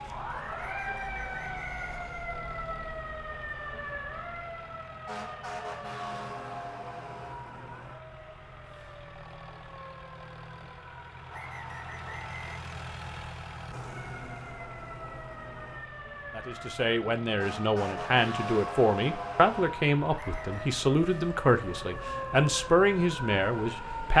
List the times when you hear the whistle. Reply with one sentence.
The whistle can be heard from 0.6 to 2.1 s, from 11.3 to 12.6 s and from 20.1 to 20.8 s.